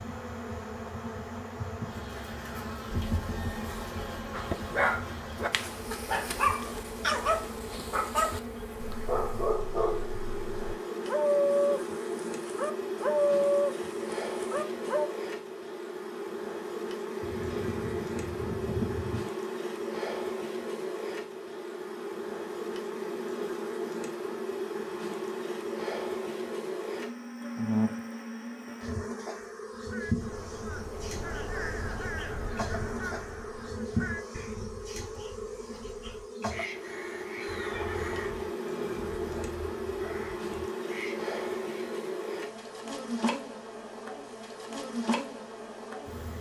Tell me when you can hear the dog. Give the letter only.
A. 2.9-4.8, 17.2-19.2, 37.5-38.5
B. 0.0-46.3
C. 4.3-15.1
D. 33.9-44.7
C.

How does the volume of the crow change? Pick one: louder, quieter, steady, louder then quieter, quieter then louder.
quieter.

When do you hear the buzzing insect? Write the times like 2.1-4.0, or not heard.
0.0-46.3.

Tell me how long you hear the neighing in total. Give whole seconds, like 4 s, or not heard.
5 s.